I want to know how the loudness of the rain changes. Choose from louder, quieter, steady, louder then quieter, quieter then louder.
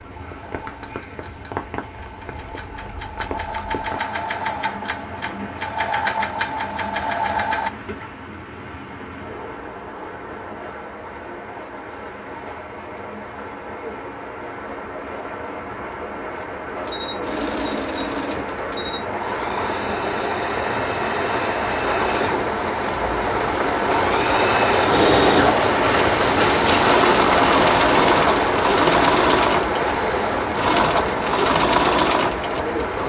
louder.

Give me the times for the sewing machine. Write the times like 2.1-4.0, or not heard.
0.0-7.7, 16.9-22.5, 23.8-33.0.